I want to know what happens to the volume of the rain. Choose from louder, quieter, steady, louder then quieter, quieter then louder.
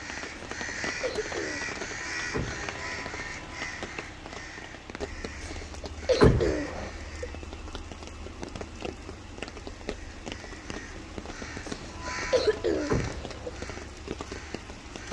steady.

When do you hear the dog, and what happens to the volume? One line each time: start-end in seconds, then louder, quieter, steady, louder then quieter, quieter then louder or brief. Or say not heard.
not heard.